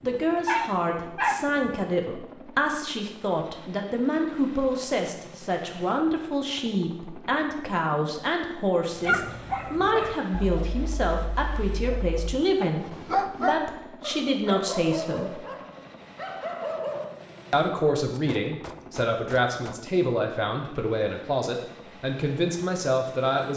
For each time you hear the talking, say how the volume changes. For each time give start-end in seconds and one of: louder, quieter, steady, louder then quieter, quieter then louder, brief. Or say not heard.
0.0-15.4 steady
17.5-23.5 steady.